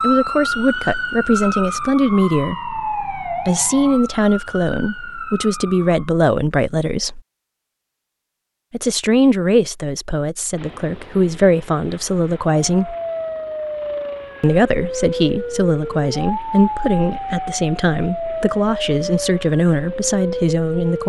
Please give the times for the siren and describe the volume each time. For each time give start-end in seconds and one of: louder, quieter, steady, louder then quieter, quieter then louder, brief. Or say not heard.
0.0-6.1 quieter
12.7-21.0 steady.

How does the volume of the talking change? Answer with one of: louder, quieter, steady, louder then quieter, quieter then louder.
steady.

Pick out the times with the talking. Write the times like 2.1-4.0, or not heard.
0.0-7.2, 8.7-12.9, 14.4-21.0.